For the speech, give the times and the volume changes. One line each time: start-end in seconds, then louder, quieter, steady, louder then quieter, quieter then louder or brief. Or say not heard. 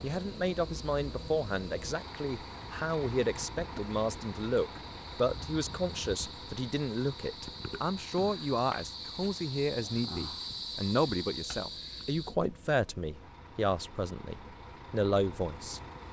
0.0-15.8 steady.